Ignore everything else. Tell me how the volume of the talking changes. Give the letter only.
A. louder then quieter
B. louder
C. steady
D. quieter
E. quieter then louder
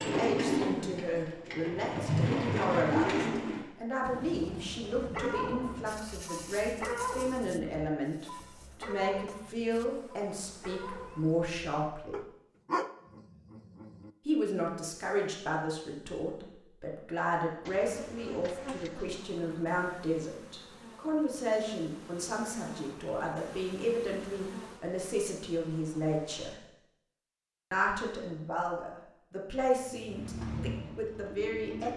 C.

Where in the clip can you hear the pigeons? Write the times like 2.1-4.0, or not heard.
0.0-3.6, 29.6-31.9.